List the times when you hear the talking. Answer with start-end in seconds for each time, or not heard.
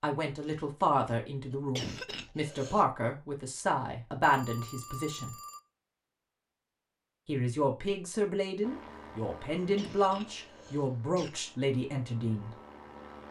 0.0-5.3, 7.2-12.5.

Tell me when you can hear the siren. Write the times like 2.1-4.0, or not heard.
not heard.